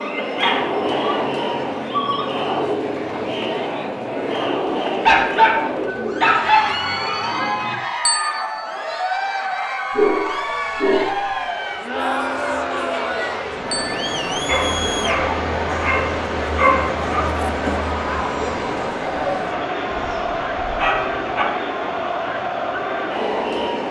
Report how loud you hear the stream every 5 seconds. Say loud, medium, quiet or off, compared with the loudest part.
off, off, loud, loud, medium.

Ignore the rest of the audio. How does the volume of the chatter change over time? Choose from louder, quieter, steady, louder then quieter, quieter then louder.
steady.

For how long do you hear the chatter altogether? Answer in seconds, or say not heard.
24 s.